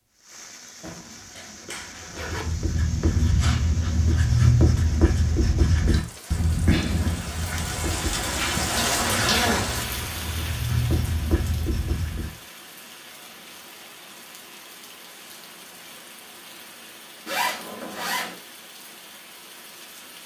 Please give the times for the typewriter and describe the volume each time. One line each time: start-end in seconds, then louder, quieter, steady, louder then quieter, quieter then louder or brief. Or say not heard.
not heard.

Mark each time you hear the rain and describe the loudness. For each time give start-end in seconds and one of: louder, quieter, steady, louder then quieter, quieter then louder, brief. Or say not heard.
0.1-20.2 louder then quieter.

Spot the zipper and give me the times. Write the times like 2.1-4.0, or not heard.
0.8-2.5, 8.3-10.0, 17.2-18.4.